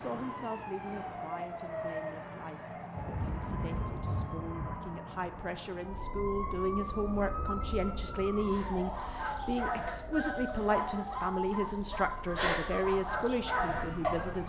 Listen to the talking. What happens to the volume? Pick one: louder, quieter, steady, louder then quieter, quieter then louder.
louder.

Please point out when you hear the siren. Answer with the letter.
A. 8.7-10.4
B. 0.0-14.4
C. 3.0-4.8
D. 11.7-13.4
B.